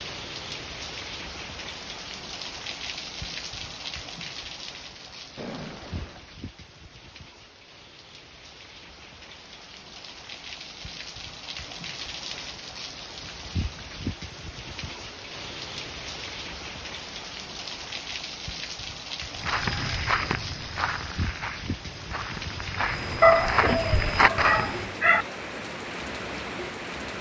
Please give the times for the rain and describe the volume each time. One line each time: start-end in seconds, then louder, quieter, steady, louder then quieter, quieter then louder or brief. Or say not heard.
0.0-27.1 quieter then louder.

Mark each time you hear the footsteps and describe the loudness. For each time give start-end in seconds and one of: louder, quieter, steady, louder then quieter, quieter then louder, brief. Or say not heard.
19.3-24.9 quieter then louder.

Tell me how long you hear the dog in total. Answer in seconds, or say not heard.
2 s.